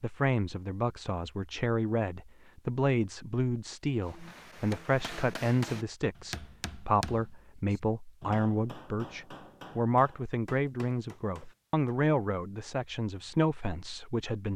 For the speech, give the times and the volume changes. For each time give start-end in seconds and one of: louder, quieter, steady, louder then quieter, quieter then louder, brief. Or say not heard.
0.0-14.5 steady.